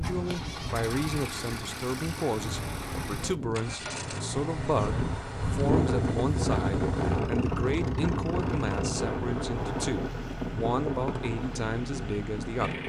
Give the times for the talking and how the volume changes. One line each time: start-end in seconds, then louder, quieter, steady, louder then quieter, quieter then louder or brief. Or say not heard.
0.0-12.8 steady.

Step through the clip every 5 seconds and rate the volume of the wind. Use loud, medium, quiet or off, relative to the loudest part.
medium, loud, medium.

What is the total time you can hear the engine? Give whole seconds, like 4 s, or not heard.
13 s.